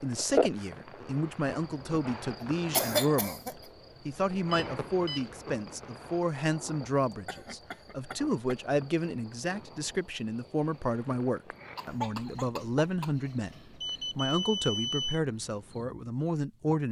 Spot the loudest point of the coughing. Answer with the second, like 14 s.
3 s.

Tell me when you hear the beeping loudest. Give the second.
15 s.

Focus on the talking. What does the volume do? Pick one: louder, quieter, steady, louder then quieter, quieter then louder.
steady.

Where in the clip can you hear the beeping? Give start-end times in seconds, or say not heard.
4.5-5.3, 13.8-15.2.